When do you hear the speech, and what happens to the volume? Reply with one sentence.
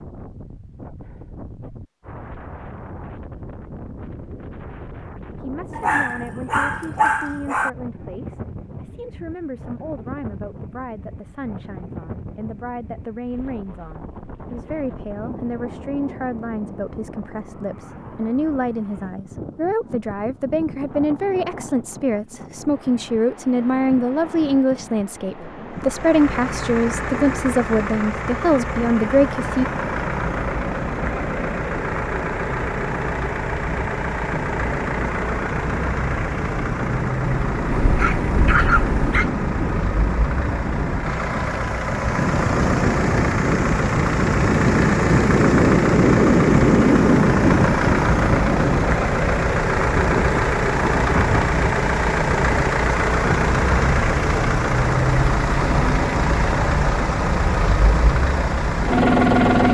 The speech can be heard from 5.4 to 29.6 s, getting louder.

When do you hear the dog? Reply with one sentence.
You can hear the dog from 5.8 to 7.7 s and from 37.8 to 39.3 s.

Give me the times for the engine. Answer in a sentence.
You can hear the engine from 25.7 to 59.6 s.